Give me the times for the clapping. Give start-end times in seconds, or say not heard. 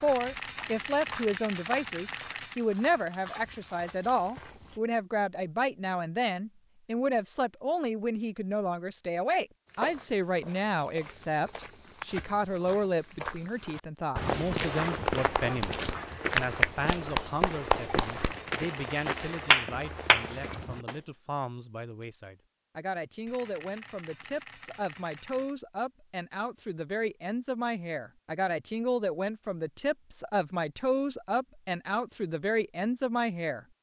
15.1-20.9.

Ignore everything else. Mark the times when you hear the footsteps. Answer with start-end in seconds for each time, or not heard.
0.0-4.8, 9.7-20.9.